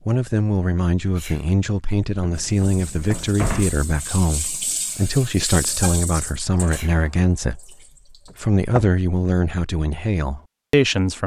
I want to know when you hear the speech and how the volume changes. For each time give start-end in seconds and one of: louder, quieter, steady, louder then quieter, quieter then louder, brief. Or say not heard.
0.1-7.8 steady
8.4-11.2 brief.